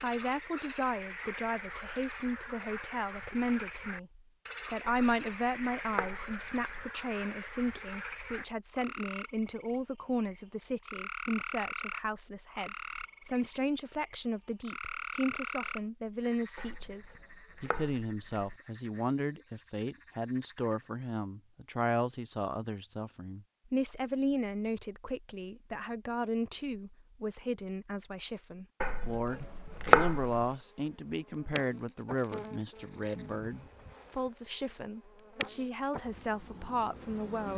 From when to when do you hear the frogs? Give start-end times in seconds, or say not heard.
0.0-20.9.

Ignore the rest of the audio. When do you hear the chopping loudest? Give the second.
30 s.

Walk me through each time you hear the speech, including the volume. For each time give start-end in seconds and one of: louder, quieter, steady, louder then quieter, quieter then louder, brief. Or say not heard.
0.0-37.5 steady.